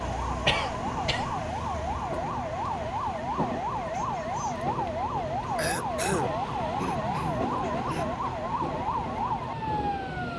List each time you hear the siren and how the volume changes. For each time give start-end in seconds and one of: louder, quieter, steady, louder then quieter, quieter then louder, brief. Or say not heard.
0.0-10.3 steady.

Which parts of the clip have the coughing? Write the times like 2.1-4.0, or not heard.
0.5-1.4, 5.5-8.1.